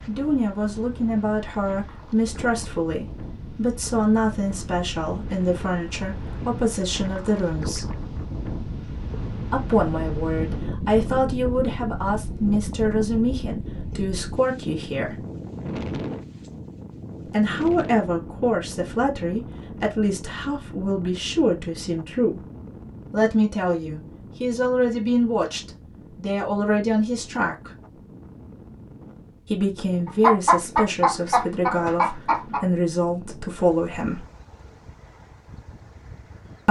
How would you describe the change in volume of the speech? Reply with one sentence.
The loudness of the speech stays about the same.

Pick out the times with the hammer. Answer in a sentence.
The hammer can't be heard in this clip.